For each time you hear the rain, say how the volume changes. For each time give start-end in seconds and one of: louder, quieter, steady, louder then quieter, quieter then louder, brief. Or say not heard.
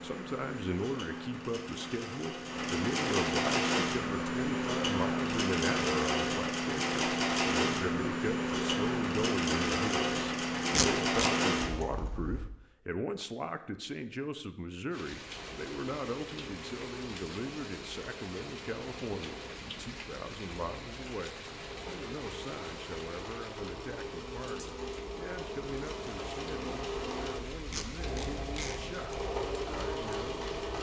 14.9-30.7 steady.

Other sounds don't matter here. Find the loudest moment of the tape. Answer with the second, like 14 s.
11 s.